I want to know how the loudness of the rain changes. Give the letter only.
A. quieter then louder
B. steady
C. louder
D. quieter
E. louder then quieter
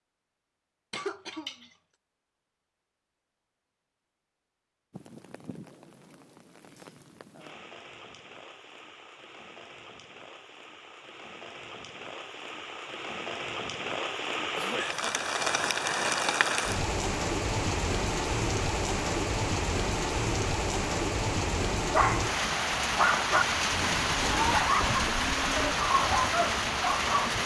C.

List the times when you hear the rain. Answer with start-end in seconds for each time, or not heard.
4.9-27.4.